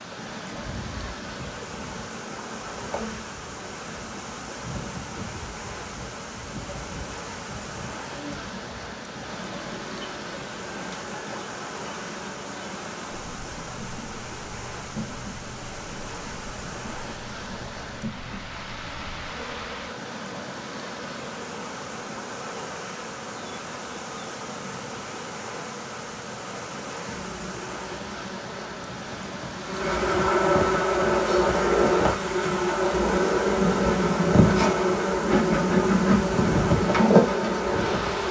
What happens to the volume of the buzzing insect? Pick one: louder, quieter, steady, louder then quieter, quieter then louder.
louder.